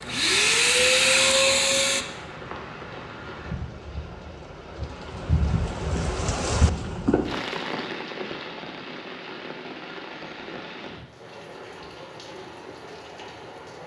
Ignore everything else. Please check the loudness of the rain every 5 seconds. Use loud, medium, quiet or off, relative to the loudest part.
medium, loud, medium.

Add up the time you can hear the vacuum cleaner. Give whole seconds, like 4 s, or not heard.
2 s.